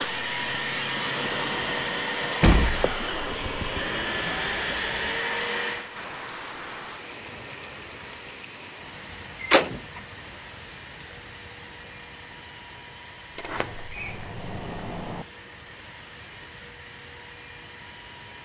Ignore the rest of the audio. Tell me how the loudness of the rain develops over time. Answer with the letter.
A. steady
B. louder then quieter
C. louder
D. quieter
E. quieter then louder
D.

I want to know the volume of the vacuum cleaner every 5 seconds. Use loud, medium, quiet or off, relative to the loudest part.
loud, medium, quiet, quiet.